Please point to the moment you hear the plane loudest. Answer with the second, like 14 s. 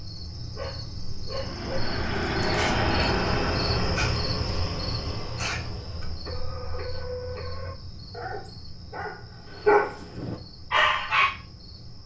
3 s.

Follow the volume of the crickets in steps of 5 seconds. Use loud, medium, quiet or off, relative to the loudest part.
loud, medium, quiet.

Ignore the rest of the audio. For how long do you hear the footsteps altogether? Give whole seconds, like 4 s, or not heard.
not heard.